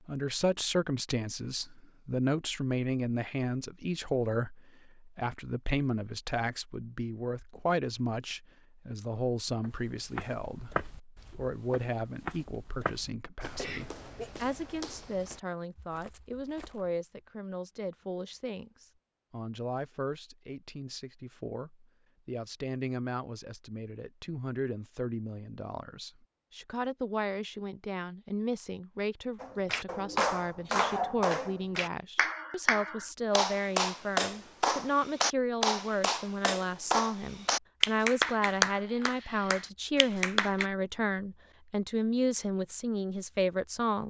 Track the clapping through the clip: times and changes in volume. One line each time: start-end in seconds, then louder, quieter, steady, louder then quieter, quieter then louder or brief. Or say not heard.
29.4-40.6 steady.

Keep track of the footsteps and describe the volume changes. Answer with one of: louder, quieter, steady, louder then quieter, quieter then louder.
quieter.